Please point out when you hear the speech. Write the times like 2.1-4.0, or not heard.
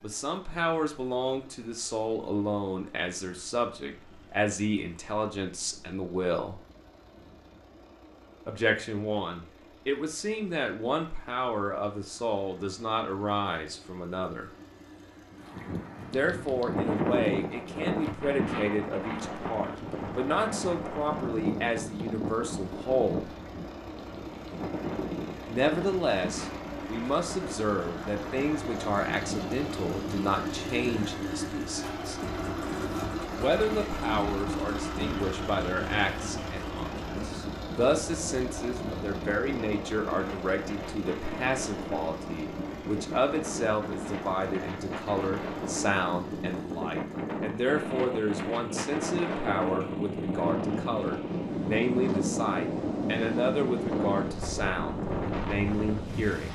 0.0-6.6, 8.4-14.5, 16.1-23.3, 25.4-32.2, 33.3-56.5.